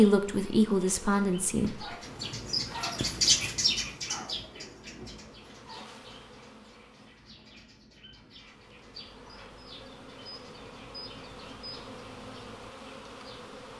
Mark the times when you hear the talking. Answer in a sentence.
You can hear the talking from 0.0 to 1.8 s.